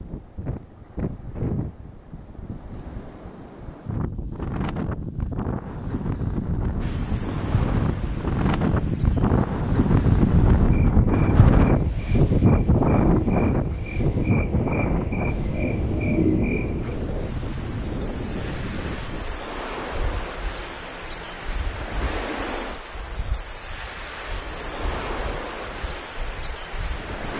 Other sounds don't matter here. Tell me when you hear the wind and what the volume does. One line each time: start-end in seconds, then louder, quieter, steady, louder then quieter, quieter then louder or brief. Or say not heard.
0.0-27.3 louder then quieter.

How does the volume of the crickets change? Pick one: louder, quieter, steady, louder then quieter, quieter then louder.
louder.